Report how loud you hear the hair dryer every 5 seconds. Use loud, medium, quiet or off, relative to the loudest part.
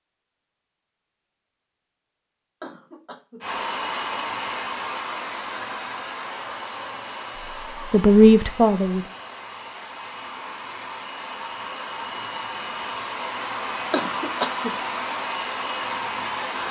loud, medium, loud, loud.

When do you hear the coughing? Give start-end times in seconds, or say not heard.
2.6-3.4, 13.9-14.8.